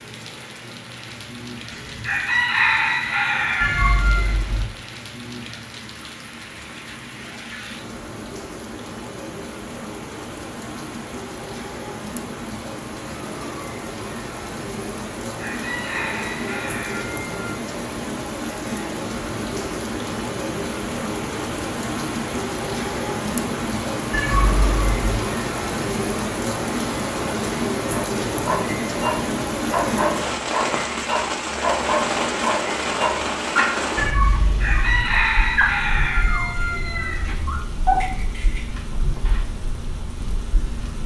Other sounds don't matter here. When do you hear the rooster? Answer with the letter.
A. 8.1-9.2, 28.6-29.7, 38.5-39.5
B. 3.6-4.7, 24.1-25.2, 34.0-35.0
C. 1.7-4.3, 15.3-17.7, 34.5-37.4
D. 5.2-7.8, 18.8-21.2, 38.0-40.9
C.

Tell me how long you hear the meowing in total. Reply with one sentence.
The meowing can be heard for 3 seconds in total.